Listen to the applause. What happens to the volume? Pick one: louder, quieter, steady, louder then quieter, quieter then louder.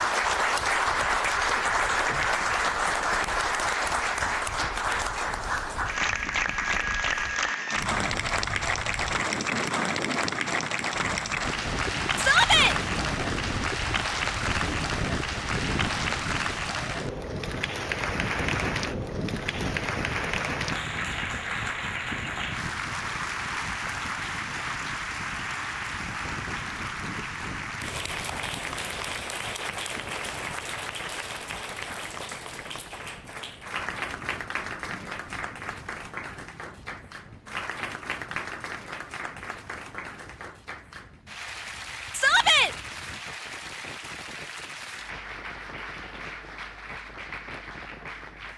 quieter.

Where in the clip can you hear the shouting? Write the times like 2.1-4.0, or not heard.
12.2-12.8, 42.1-42.7.